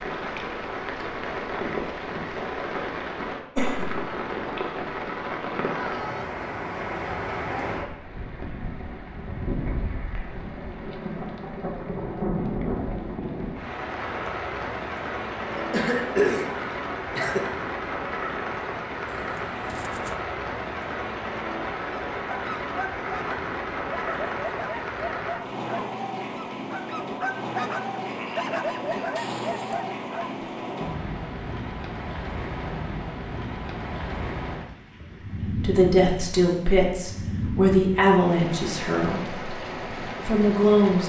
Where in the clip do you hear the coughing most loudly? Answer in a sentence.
The loudest moment of the coughing is at 16 seconds.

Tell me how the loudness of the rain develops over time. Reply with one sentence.
The loudness of the rain stays about the same.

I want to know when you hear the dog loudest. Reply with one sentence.
The volume of the dog peaks at 29 seconds.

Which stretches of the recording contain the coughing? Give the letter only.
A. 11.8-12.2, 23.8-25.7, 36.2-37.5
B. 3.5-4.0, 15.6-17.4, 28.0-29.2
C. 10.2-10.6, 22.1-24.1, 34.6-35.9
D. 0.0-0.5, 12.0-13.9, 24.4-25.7
B.